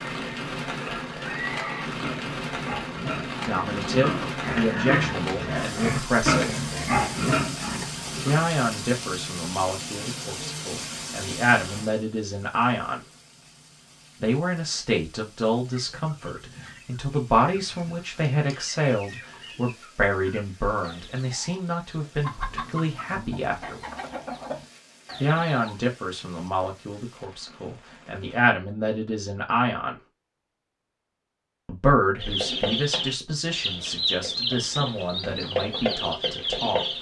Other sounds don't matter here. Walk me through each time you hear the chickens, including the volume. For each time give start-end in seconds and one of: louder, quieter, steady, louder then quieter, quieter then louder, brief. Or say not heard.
15.7-25.8 louder
32.2-36.9 steady.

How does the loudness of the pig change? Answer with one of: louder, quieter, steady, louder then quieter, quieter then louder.
louder.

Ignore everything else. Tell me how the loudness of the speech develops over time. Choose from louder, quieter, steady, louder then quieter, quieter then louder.
steady.